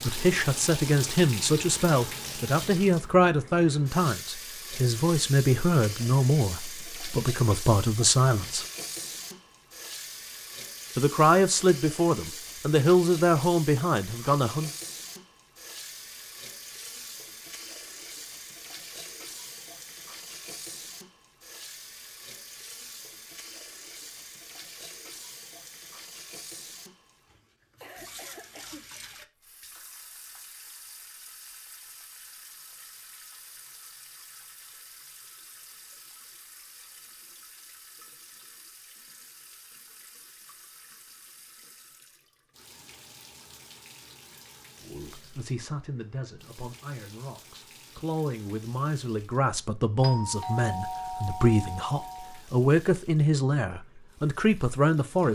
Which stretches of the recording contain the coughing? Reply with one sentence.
The coughing can be heard from 27.6 to 28.9 s.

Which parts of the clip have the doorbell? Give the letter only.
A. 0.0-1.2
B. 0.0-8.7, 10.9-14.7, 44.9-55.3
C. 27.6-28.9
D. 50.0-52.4
D.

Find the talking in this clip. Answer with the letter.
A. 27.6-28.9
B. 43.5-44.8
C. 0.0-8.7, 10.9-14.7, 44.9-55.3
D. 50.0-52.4
C.